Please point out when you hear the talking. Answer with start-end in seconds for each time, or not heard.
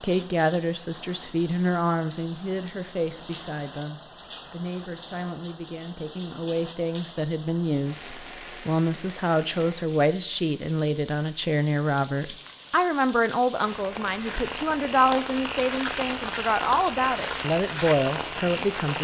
0.0-19.0.